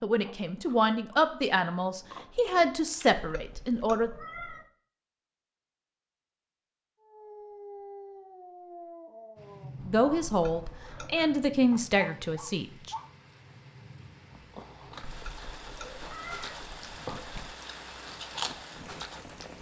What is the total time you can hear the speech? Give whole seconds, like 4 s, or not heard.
7 s.